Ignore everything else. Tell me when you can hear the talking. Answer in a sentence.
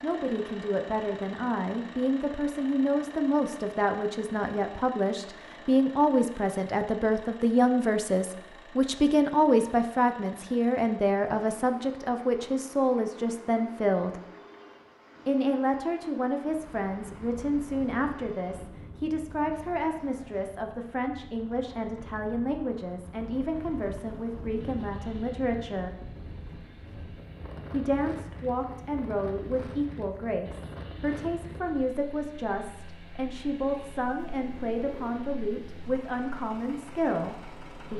The talking can be heard from 0.0 to 14.2 s, from 15.2 to 25.9 s and from 27.7 to 37.9 s.